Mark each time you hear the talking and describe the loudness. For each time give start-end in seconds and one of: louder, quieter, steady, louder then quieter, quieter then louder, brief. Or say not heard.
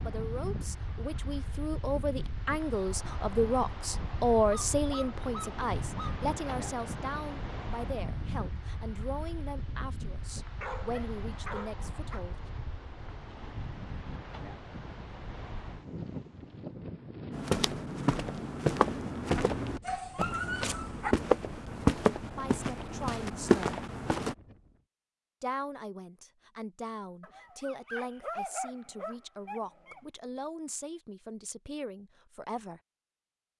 0.1-12.4 louder then quieter
22.4-23.8 brief
25.4-32.8 steady.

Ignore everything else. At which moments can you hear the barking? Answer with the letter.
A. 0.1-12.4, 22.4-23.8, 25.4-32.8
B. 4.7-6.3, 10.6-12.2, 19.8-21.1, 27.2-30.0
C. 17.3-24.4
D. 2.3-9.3
B.